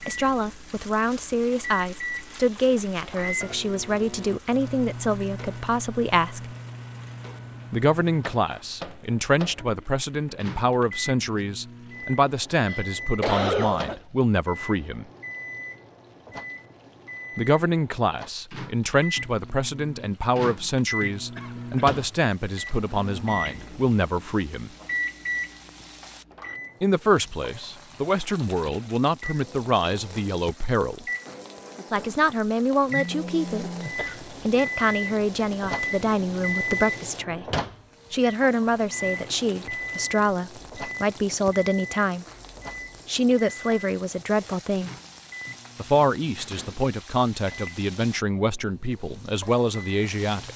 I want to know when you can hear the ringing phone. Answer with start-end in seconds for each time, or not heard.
32.9-34.0.